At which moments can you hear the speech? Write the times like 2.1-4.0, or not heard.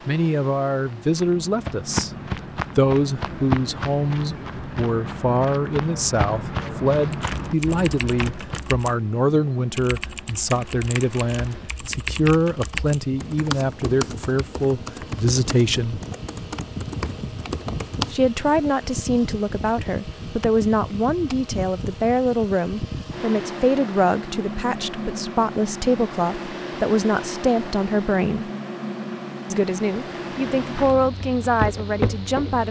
0.1-2.1, 2.8-16.0, 18.1-28.5, 29.5-32.6.